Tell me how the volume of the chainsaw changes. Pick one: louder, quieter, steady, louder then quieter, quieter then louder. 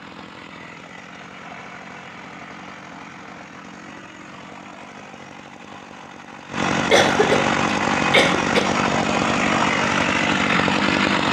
louder.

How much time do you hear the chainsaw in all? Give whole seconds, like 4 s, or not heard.
11 s.